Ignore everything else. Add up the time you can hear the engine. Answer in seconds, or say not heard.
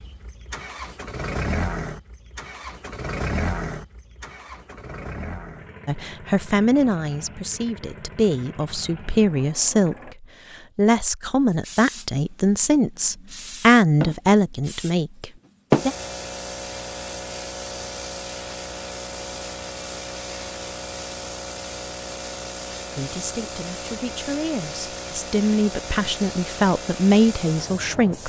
10 s.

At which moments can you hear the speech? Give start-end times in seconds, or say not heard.
5.8-15.9, 22.9-28.2.